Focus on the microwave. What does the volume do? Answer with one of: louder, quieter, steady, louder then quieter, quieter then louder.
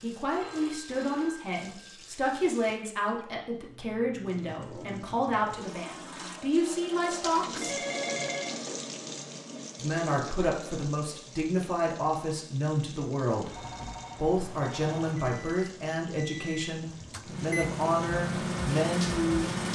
louder.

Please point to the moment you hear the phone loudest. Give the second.
8 s.